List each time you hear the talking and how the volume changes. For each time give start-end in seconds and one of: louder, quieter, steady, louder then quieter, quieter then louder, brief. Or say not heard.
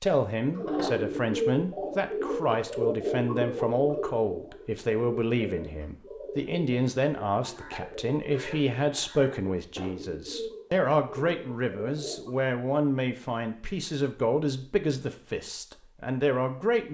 0.0-16.8 steady.